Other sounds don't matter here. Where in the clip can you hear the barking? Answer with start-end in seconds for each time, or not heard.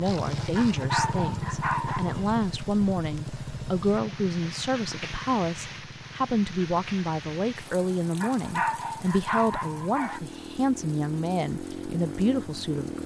0.6-2.2, 8.2-10.2.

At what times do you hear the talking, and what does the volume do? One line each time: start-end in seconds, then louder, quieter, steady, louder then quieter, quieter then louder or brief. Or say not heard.
0.0-13.0 steady.